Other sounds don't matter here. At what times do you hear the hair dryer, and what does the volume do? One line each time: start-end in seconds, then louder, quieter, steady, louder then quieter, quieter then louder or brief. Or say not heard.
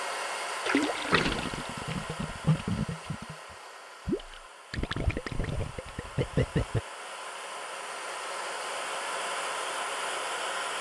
0.0-10.7 quieter then louder.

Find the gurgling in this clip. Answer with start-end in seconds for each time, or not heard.
0.7-6.8.